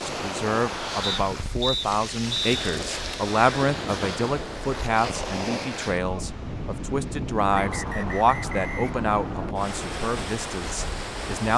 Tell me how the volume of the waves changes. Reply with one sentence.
The loudness of the waves stays about the same.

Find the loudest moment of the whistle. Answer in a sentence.
The volume of the whistle peaks at 2 seconds.